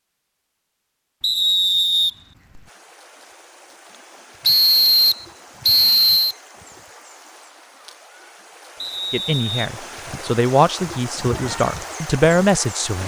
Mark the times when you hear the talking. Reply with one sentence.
The talking can be heard from 9.1 to 13.0 s.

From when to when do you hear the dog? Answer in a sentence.
You can't hear the dog here.